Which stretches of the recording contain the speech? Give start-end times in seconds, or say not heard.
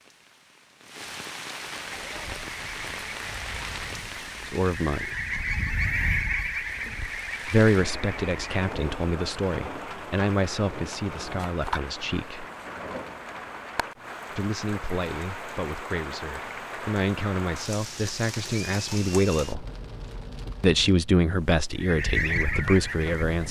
4.5-5.1, 7.5-12.4, 14.3-19.6, 20.6-23.4.